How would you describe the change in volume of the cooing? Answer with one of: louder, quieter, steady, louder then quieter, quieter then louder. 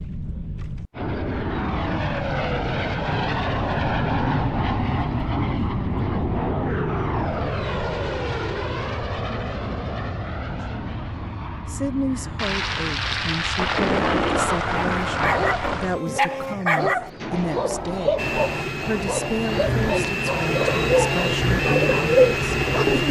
louder.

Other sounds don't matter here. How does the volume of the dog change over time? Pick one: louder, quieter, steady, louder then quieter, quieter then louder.
quieter.